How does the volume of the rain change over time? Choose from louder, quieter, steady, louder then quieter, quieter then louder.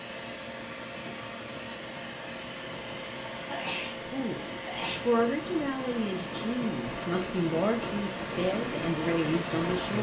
louder.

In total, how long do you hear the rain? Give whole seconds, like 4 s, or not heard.
10 s.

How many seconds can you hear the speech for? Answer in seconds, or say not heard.
6 s.